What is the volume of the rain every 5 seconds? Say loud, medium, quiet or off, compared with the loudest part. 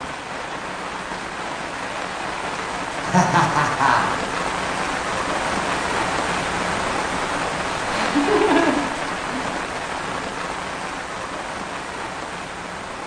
loud, loud, medium.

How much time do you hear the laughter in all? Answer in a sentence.
You can hear the laughter for 3 seconds altogether.